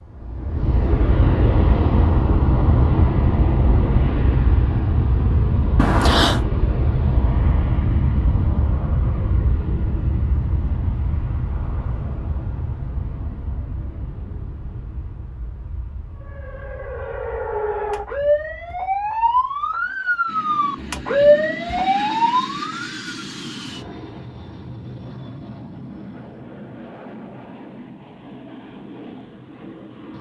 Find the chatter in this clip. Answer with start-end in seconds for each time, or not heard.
not heard.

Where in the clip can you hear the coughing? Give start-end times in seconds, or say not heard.
5.8-6.5.